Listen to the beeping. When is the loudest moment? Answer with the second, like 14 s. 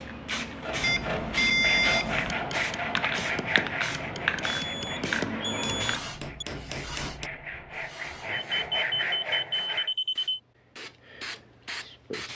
2 s.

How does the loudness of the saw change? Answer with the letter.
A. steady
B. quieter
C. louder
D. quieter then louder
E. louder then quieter
D.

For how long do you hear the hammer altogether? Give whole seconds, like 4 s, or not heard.
5 s.